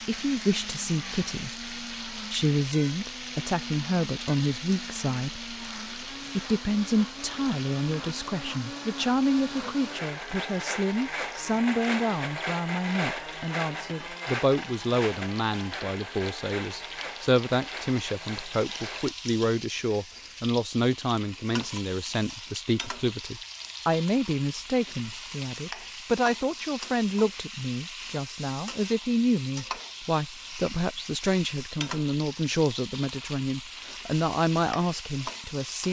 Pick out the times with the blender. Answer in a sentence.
You can hear the blender from 0.0 to 19.1 s.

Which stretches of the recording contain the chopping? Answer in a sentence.
You can't hear the chopping here.